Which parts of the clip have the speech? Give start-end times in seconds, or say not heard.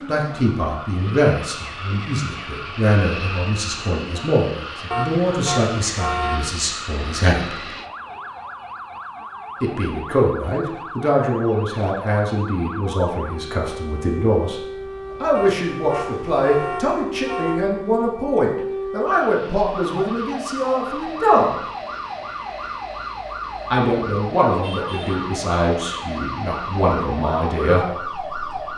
0.1-7.6, 9.6-21.6, 23.7-27.9.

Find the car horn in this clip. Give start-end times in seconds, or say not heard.
4.9-6.5, 15.3-17.6.